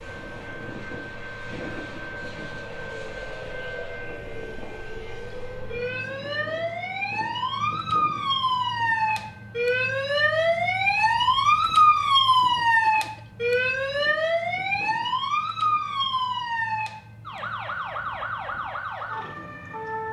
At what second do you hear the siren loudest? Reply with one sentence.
The volume of the siren peaks at 12 seconds.